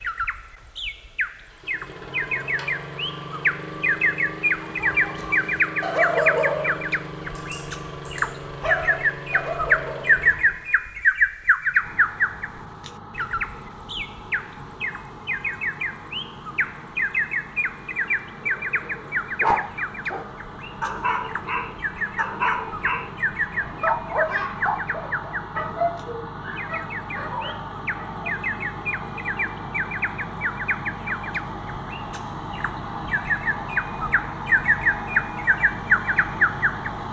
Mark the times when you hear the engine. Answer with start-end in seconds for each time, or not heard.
0.0-37.0.